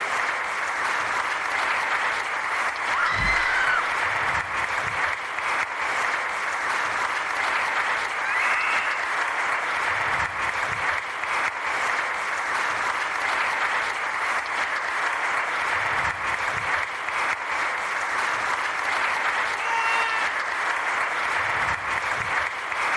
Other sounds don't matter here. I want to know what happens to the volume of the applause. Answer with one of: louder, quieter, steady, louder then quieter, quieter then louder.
steady.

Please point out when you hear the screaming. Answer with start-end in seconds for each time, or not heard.
2.9-3.9, 8.2-9.1, 19.6-20.4.